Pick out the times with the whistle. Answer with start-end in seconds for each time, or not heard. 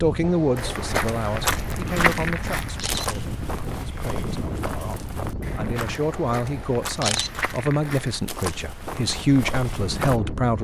not heard.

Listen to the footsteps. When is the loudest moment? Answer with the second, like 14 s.
2 s.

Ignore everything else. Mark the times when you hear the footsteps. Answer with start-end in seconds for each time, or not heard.
0.6-10.2.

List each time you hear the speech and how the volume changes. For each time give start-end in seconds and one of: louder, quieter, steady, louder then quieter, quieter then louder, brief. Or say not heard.
0.0-10.6 quieter then louder.